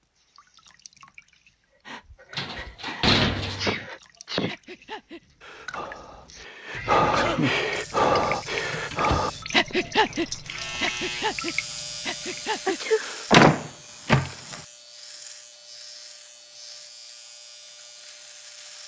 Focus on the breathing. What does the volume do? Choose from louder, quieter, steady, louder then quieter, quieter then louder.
louder then quieter.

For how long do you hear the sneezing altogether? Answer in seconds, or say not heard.
2 s.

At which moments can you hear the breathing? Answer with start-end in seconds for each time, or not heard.
1.9-13.4.